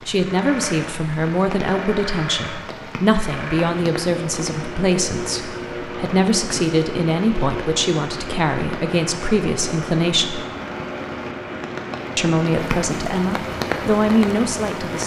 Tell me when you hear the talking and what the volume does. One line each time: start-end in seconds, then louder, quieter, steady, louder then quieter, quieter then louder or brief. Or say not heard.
0.1-10.4 steady
12.2-15.0 brief.